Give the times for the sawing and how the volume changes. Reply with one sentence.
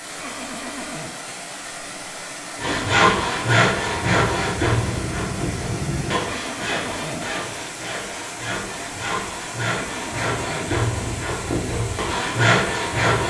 The sawing can be heard from 2.5 to 13.2 s, getting quieter then louder.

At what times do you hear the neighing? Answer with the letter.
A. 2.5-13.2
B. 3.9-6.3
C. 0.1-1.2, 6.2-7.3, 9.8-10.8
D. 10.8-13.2
C.